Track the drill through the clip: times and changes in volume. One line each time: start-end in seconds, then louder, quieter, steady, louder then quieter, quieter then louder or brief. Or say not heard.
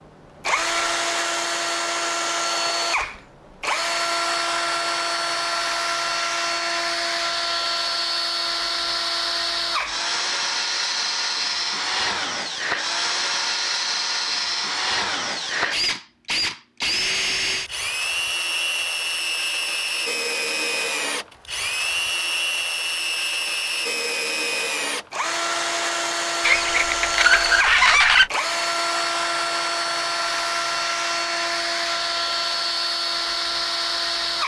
0.0-34.4 steady.